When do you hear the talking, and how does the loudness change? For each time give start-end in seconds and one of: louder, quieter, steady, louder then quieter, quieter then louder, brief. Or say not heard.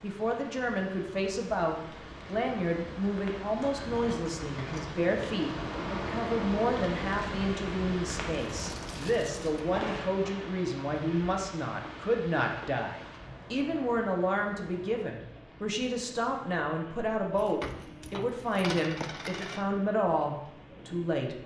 0.0-21.4 steady.